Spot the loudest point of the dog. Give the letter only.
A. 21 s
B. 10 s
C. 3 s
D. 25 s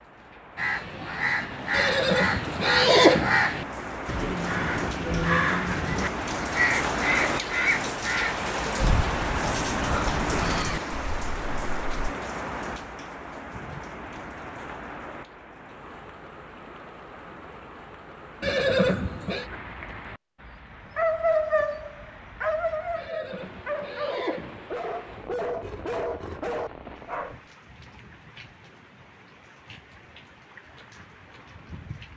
A.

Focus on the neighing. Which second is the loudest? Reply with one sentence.
The loudest moment of the neighing is at 3 seconds.